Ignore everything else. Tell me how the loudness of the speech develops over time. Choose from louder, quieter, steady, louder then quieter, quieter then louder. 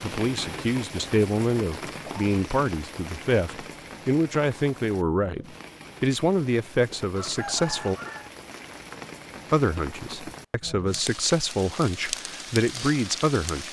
steady.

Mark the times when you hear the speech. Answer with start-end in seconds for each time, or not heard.
0.0-8.0, 9.5-13.6.